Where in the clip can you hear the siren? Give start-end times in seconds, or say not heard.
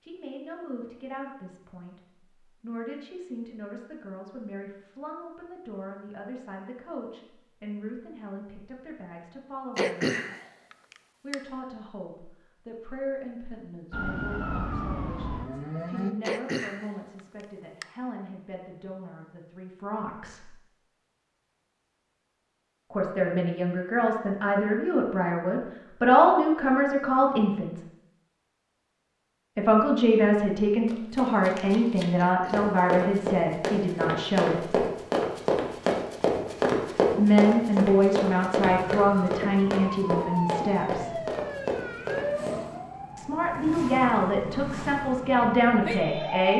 13.9-16.1, 38.6-46.5.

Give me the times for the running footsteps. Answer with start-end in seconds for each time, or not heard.
30.9-42.6.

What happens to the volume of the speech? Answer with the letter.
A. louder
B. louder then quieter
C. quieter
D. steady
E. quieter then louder
A.